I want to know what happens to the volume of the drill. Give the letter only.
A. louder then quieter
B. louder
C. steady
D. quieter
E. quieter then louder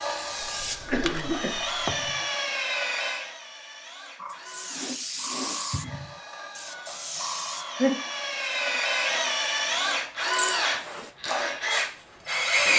E.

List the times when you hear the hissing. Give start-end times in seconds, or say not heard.
0.0-2.3, 4.2-12.7.